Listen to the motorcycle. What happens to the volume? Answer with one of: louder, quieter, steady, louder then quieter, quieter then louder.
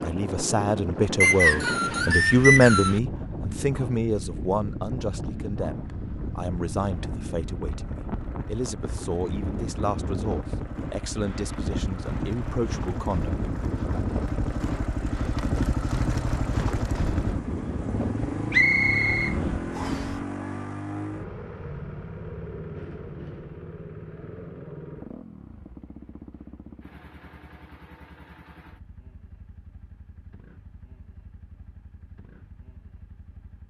louder then quieter.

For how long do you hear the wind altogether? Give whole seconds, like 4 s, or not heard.
20 s.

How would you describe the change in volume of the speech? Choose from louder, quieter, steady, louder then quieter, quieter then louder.
quieter.